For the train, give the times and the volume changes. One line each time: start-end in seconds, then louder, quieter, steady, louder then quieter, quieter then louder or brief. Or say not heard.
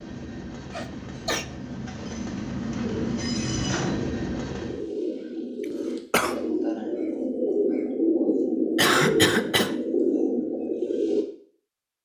0.0-4.8 louder.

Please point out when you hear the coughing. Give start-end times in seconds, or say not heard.
0.7-1.4, 5.6-6.3, 8.8-9.8.